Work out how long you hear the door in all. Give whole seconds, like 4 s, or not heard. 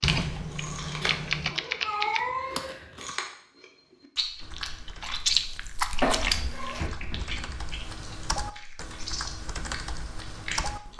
3 s.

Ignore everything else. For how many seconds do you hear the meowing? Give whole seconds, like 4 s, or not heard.
3 s.